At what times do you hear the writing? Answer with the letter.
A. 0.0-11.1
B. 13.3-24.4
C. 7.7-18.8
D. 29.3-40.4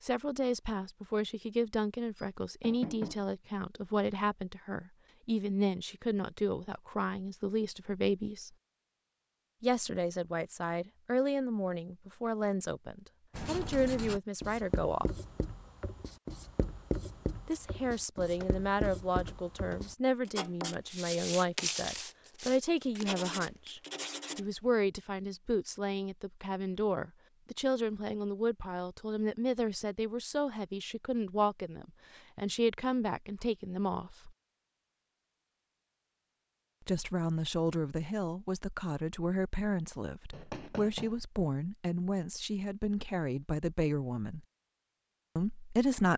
B.